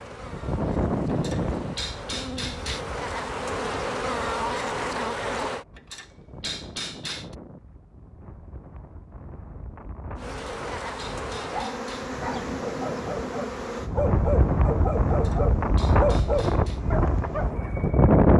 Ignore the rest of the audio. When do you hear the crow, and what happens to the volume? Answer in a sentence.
The crow can't be heard in this clip.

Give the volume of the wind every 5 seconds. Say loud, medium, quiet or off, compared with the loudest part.
medium, quiet, medium, loud.